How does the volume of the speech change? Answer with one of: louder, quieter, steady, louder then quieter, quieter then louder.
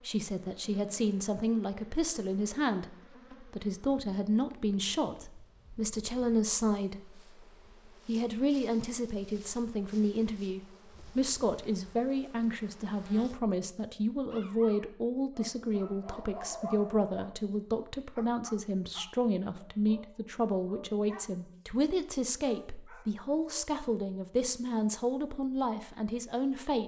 steady.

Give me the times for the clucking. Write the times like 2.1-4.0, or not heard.
not heard.